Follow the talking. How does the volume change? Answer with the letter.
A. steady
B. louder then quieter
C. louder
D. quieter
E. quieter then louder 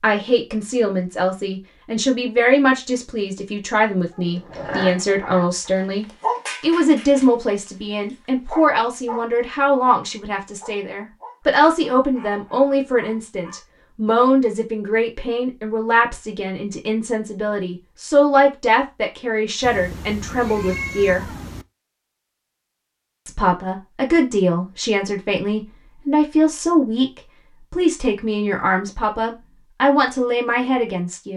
A.